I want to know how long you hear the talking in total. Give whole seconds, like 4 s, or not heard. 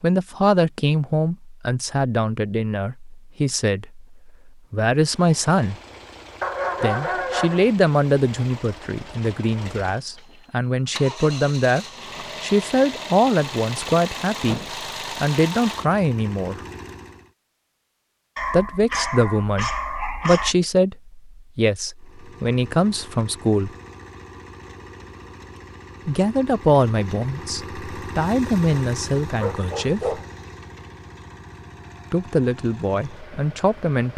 27 s.